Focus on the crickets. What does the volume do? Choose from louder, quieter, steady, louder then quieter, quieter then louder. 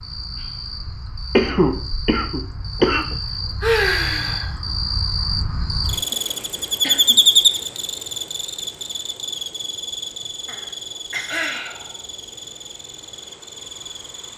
louder then quieter.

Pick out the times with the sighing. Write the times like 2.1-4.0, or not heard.
3.0-4.5, 11.2-12.1.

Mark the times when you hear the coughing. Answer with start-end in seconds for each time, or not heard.
1.4-3.0, 5.9-7.2, 10.4-11.6.